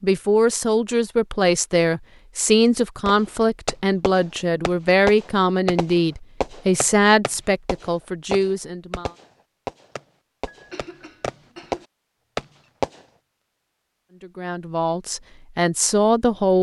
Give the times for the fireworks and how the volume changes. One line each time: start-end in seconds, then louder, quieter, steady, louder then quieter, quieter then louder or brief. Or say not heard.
3.0-13.0 quieter then louder.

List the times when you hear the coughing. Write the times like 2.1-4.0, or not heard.
10.4-11.8.